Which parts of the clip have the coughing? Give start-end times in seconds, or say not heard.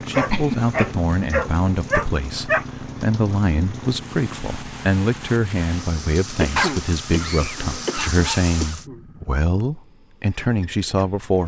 0.3-0.9, 6.4-9.0.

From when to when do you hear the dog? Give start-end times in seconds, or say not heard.
0.1-2.6, 6.5-8.2.